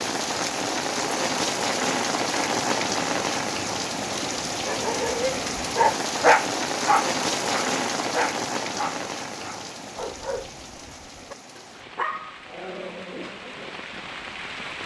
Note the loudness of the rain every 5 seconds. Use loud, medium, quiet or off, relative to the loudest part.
loud, loud, quiet.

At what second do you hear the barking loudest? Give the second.
6 s.